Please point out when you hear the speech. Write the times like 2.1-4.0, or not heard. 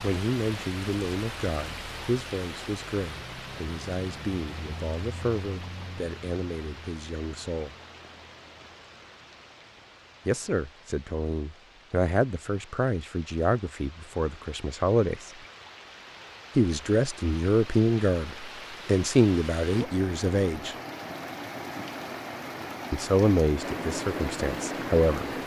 0.0-7.8, 10.2-15.3, 16.6-20.8, 22.9-25.2.